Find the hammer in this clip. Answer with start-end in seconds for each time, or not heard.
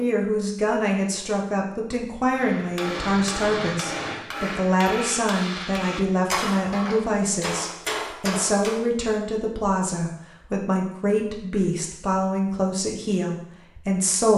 2.3-8.8.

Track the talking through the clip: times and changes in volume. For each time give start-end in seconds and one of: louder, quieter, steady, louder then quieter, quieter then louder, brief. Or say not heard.
0.0-14.3 steady.